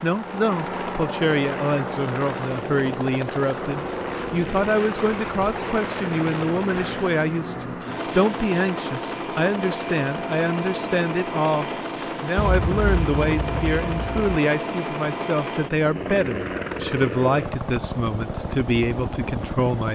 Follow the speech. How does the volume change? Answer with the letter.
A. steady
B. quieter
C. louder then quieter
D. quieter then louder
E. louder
A.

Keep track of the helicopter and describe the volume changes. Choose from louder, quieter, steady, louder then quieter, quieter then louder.
steady.